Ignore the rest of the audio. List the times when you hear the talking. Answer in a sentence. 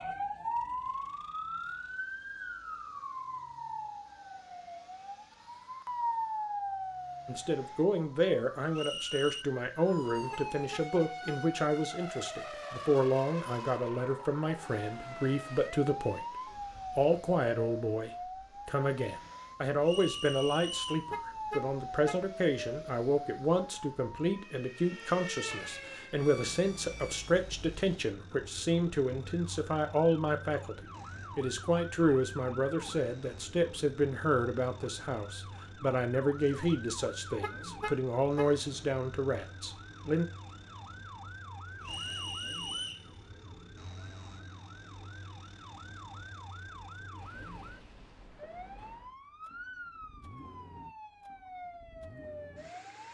You can hear the talking from 7.2 to 16.2 s and from 16.9 to 40.2 s.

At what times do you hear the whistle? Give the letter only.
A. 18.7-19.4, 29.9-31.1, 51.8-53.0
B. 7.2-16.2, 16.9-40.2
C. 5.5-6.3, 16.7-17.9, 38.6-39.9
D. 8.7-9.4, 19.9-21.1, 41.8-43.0
D.